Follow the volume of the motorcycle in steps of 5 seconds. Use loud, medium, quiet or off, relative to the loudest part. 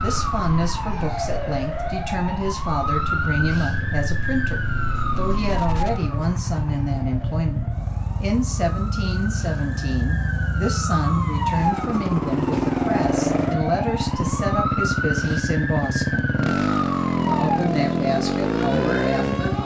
medium, medium, loud, loud.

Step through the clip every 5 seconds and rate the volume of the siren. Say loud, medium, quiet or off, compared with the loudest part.
loud, medium, loud, loud.